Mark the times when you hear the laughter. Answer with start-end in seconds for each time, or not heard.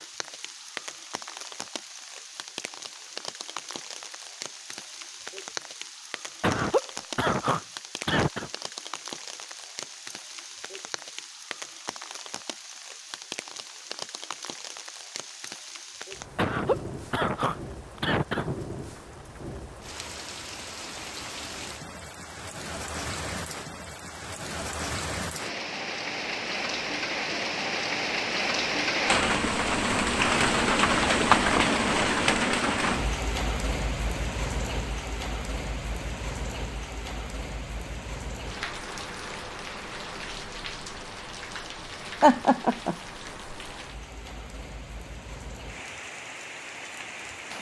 6.4-8.5, 16.4-18.6, 42.2-43.0.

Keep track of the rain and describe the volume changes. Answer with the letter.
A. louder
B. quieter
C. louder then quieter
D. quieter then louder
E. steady
C.